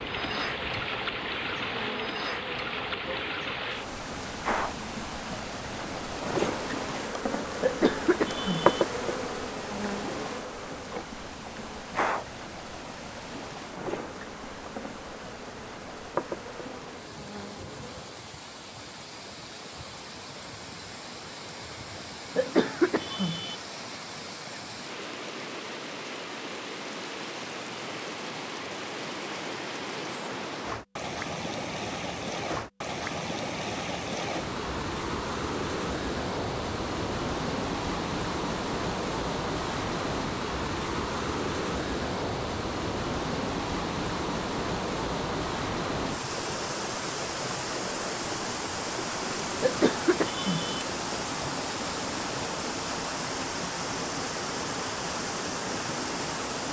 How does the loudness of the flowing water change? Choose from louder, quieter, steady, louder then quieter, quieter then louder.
quieter then louder.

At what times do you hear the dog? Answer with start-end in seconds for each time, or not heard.
not heard.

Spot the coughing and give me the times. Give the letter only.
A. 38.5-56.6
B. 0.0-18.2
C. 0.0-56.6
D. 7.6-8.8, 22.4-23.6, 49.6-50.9
D.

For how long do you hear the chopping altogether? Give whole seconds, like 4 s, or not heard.
not heard.